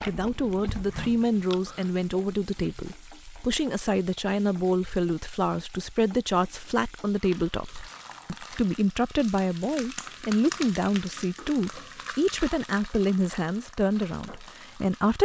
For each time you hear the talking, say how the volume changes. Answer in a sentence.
The talking can be heard from 0.0 to 15.2 s, at a steady volume.